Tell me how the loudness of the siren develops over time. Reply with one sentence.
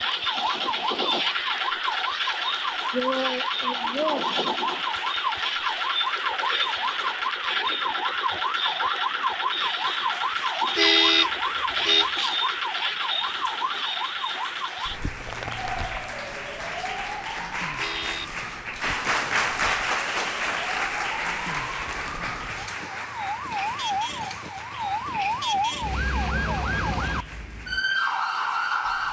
The volume of the siren goes down, then up.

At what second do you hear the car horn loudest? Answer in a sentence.
The volume of the car horn peaks at 11 seconds.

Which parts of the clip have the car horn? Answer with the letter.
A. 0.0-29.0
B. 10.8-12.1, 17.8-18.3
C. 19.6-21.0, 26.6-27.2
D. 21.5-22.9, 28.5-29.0
B.